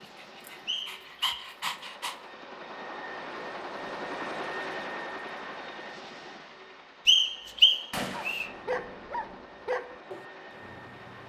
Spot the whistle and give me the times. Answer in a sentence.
You can hear the whistle from 0.7 to 1.4 s and from 7.0 to 8.4 s.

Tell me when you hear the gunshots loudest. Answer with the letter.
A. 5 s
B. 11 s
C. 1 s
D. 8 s
D.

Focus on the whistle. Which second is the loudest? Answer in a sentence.
The loudest moment of the whistle is at 8 seconds.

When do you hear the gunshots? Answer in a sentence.
The gunshots can be heard from 7.9 to 9.4 s.